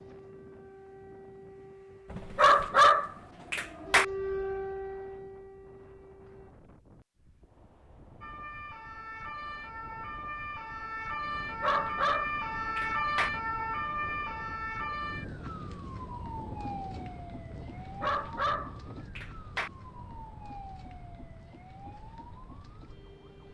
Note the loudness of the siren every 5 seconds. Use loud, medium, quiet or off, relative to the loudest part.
medium, medium, loud, medium, quiet.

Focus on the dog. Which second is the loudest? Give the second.
3 s.